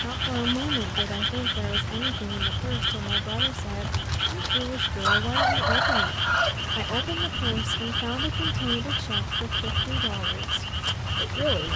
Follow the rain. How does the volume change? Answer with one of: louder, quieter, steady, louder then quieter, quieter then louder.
steady.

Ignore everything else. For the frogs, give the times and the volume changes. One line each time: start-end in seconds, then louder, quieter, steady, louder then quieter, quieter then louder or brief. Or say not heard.
0.0-11.7 steady.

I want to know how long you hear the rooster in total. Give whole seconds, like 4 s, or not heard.
4 s.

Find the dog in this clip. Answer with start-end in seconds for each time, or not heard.
not heard.